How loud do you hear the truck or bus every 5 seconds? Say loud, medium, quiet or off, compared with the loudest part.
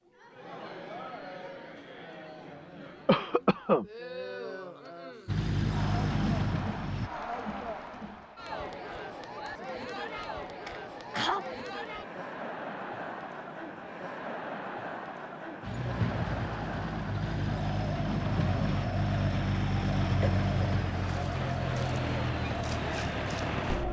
off, loud, off, loud, loud.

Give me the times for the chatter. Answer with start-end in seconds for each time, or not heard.
0.1-23.8.